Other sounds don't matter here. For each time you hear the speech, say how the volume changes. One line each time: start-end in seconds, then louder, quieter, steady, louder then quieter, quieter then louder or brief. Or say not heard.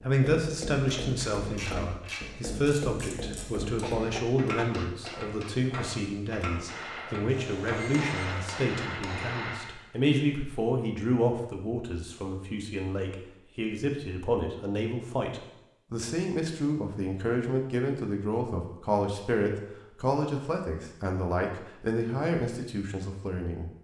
0.0-23.7 steady.